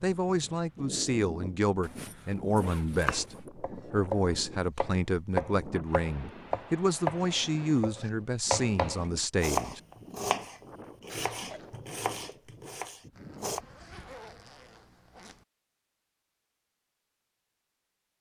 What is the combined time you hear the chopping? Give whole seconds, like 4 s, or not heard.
11 s.